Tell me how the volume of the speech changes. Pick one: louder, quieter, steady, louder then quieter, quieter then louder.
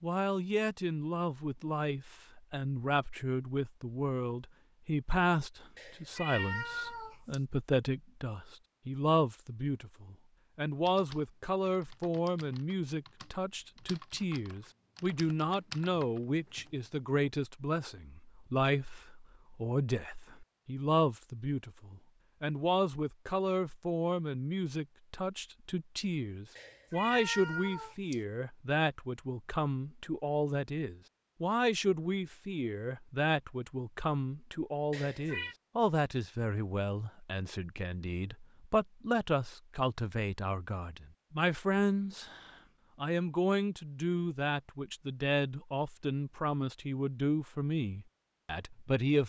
steady.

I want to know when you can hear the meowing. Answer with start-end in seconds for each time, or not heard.
5.8-7.4, 26.6-28.2, 34.9-35.5.